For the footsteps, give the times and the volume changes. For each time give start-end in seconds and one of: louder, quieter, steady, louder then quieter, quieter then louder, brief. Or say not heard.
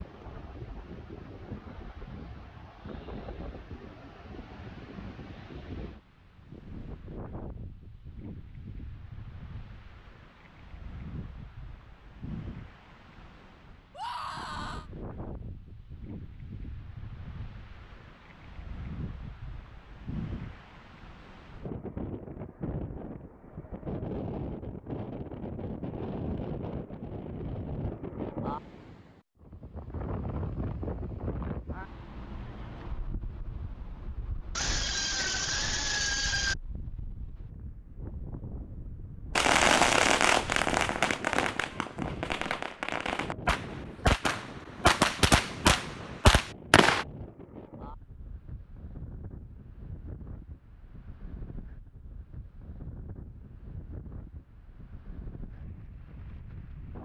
not heard.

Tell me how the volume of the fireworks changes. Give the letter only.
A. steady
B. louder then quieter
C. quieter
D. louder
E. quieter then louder
E.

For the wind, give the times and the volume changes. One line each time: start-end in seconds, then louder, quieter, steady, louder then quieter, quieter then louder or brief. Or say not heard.
0.0-57.0 louder then quieter.